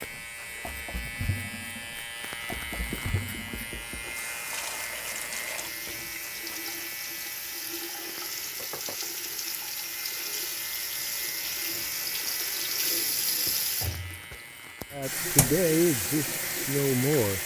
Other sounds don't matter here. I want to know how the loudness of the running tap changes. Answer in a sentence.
The loudness of the running tap goes up.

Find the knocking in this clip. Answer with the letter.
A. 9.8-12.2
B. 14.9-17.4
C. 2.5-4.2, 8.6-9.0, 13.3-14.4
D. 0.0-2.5
C.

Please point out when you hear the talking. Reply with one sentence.
You can hear the talking from 14.9 to 17.4 s.